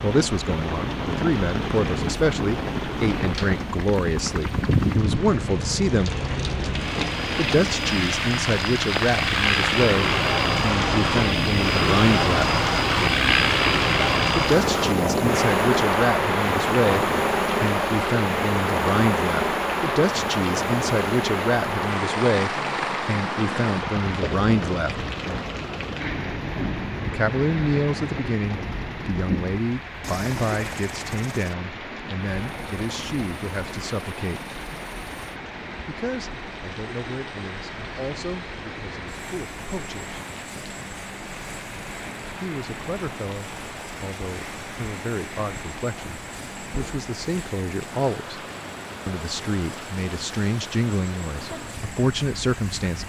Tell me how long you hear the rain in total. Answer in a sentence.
You can hear the rain for 53 seconds altogether.